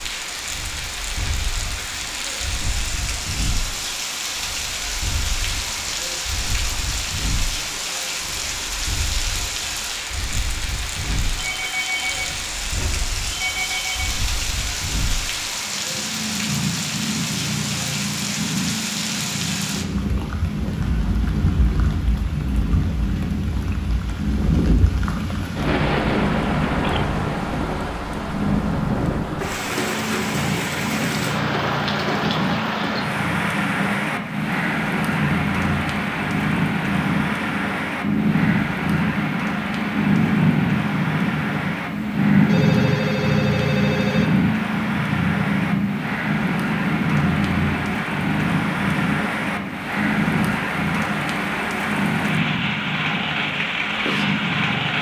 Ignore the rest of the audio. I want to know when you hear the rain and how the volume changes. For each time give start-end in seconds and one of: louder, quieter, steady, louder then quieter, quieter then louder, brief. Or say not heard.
0.0-54.9 steady.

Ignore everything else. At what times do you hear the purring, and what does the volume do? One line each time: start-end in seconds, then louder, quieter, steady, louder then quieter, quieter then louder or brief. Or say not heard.
0.0-54.9 louder.